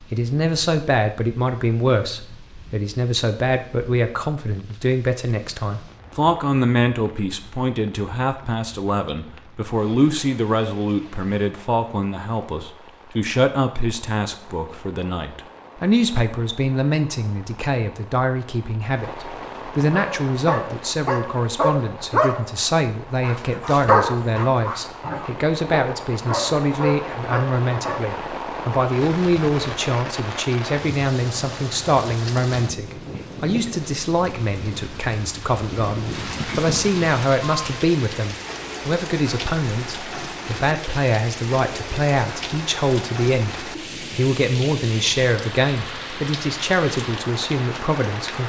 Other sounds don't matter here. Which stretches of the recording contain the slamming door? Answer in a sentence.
The slamming door can't be heard in this clip.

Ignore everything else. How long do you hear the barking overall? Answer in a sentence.
You can hear the barking for 8 seconds altogether.